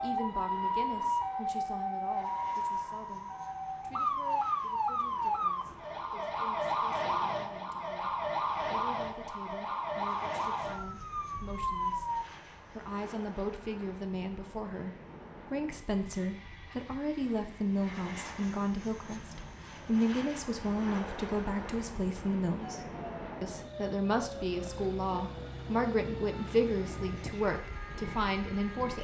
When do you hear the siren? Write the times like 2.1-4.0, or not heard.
0.0-12.2, 22.6-28.9.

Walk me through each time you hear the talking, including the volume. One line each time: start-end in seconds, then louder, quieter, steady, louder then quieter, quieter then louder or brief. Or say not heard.
0.0-28.9 louder.